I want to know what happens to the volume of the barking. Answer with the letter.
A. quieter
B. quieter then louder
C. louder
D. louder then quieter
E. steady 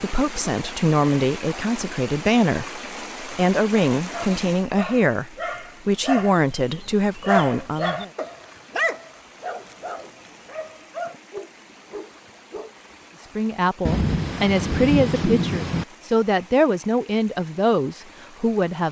D.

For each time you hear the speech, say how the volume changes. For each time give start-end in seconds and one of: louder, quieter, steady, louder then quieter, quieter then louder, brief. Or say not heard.
0.0-8.1 steady
13.3-18.8 steady.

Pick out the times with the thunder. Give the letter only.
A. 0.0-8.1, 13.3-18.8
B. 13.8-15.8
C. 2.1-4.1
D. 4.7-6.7
B.